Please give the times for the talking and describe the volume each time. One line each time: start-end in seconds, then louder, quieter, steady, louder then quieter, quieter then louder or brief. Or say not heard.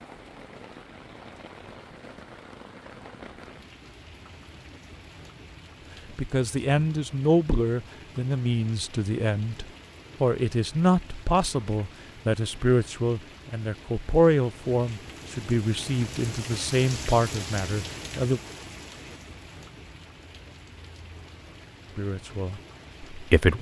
6.1-18.4 steady
21.9-23.5 brief.